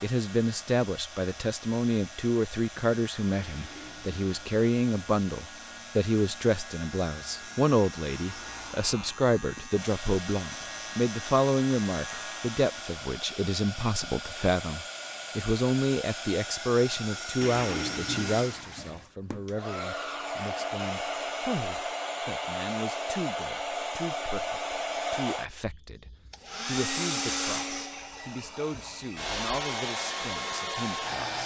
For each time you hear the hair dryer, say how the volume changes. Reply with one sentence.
The hair dryer can be heard from 0.0 to 31.4 s, getting louder.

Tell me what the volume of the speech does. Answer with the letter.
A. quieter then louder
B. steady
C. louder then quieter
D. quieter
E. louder
D.